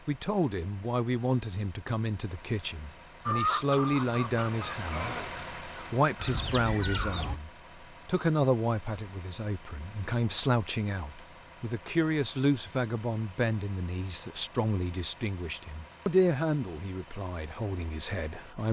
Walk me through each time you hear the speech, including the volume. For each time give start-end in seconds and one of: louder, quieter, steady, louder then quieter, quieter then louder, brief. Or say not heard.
0.1-18.6 steady.